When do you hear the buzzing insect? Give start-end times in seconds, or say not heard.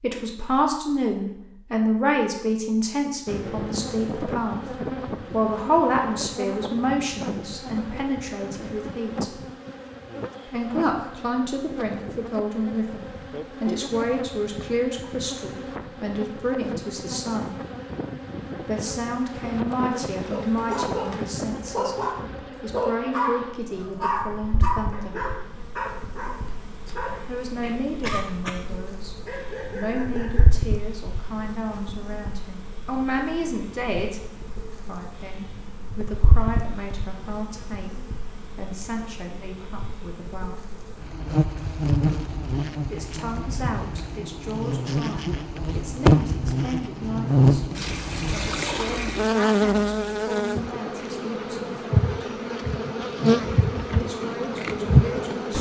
3.2-55.5.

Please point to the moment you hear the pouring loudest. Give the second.
49 s.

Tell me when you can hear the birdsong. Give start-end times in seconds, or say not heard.
not heard.